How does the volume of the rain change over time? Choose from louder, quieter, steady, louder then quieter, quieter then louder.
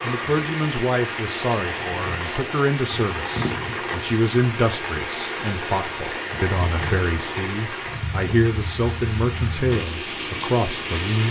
steady.